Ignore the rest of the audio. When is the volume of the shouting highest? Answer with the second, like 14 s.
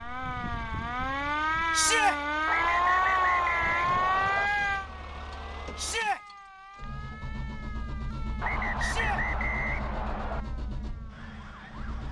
2 s.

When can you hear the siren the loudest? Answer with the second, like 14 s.
3 s.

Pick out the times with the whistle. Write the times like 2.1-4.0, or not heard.
2.5-4.5, 8.4-10.4.